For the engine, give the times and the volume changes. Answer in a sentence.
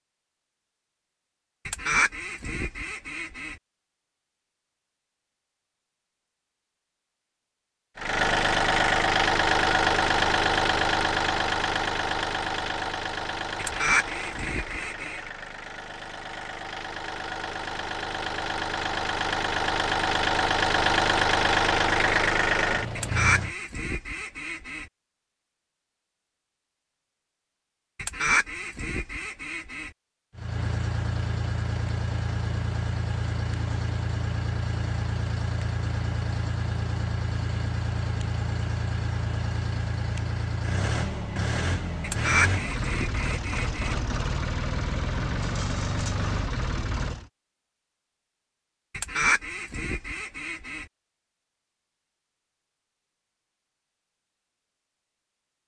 The engine can be heard from 8.0 to 23.6 s, getting quieter then louder; and from 30.3 to 47.3 s, at a steady volume.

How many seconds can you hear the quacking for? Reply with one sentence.
The quacking can be heard for 11 seconds in total.